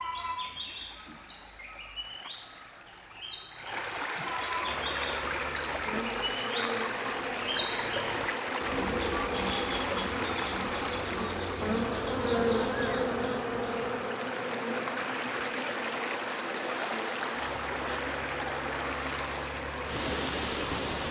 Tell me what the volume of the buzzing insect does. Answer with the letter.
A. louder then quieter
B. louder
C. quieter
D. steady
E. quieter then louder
A.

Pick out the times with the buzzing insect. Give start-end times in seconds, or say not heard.
4.5-21.0.